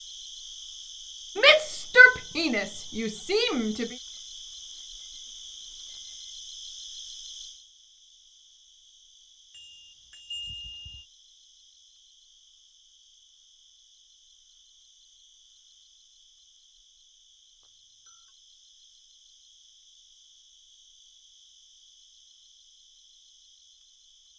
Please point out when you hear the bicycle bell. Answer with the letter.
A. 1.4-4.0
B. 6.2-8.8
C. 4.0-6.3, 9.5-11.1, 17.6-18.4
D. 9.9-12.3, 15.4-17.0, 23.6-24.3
C.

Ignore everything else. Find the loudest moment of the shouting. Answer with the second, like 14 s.
2 s.